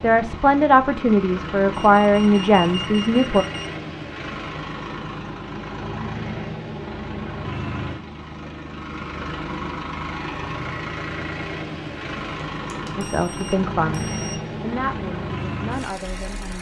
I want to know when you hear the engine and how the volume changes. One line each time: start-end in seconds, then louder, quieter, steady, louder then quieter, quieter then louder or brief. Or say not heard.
0.0-16.5 steady.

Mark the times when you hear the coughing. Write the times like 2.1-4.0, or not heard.
not heard.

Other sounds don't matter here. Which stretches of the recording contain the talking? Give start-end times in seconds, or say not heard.
0.0-3.5, 12.9-16.5.